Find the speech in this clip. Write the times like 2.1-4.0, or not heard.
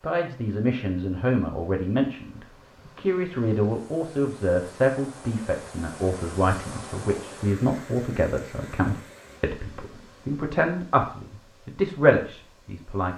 0.0-13.1.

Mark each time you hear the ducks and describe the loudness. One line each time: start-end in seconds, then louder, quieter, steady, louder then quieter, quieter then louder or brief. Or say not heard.
not heard.